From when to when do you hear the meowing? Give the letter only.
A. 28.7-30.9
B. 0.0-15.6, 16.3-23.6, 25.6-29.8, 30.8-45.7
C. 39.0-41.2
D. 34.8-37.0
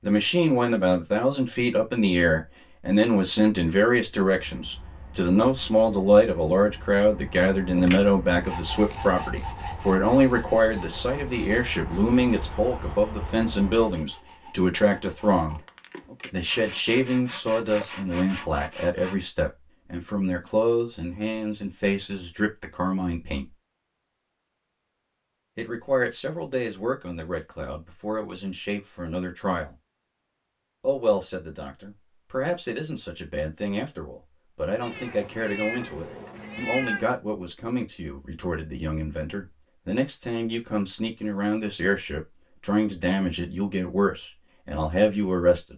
D.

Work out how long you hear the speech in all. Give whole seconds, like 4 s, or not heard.
42 s.